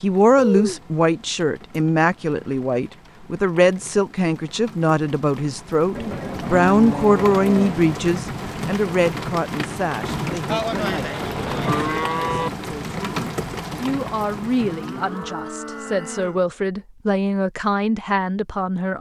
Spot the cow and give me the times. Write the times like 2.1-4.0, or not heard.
0.3-0.8, 6.0-8.0, 10.4-12.5, 14.6-16.4.